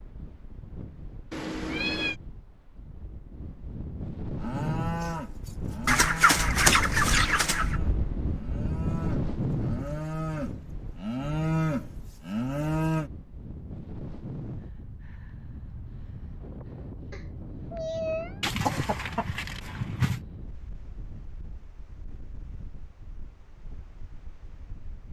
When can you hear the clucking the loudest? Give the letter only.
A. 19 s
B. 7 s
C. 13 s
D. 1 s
B.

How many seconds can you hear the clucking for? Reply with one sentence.
The clucking can be heard for 4 seconds in total.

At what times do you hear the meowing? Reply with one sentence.
You can hear the meowing from 1.3 to 2.1 s and from 17.1 to 18.4 s.